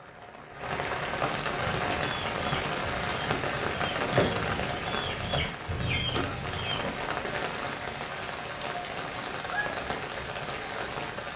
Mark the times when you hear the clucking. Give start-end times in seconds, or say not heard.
1.6-6.9.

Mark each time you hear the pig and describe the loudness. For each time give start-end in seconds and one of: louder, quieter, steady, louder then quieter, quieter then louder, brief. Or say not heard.
not heard.